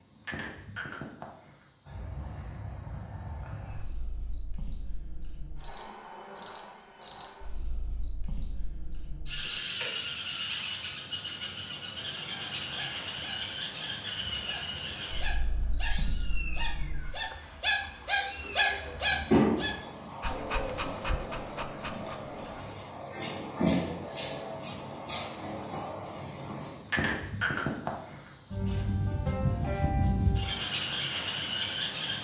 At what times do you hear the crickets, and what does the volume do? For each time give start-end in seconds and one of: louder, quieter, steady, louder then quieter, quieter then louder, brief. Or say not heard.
0.0-32.1 louder.